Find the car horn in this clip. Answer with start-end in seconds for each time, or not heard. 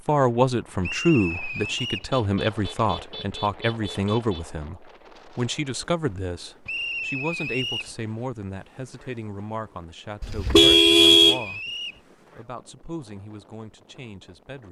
2.1-4.5, 10.2-11.4.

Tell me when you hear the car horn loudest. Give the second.
11 s.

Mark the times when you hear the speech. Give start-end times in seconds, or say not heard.
0.1-11.6, 12.3-14.6.